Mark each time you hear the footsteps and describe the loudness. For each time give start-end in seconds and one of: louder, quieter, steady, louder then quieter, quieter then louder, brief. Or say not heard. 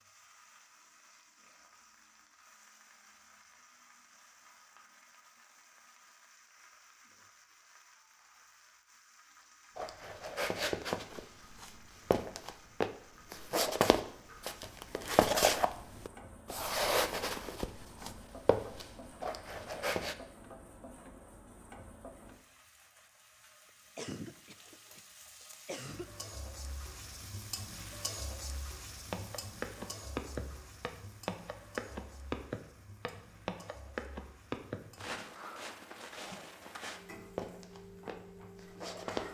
9.8-20.1 louder then quieter
29.1-39.2 quieter.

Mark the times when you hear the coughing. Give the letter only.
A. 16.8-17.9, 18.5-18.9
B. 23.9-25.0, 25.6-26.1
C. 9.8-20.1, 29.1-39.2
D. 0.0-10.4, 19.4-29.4
B.